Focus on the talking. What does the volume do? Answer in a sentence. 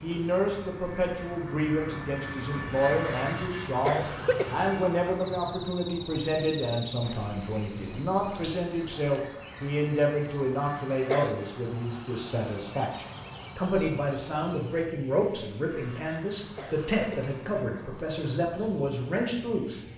The volume of the talking stays about the same.